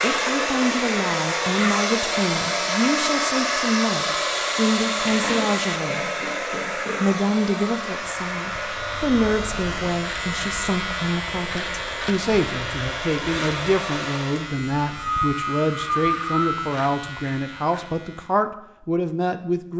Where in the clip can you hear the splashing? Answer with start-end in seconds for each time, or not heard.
not heard.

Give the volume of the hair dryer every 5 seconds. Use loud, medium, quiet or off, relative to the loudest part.
loud, medium, medium, off.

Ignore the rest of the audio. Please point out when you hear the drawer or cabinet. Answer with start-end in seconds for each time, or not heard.
not heard.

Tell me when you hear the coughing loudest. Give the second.
16 s.